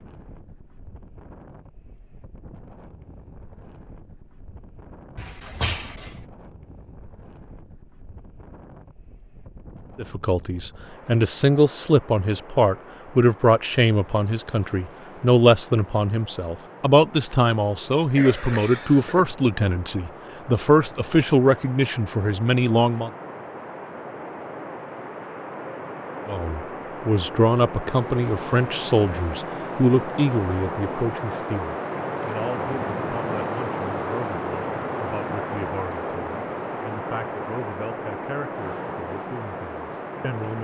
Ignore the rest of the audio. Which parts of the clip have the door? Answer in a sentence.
The door can be heard from 5.2 to 6.2 s.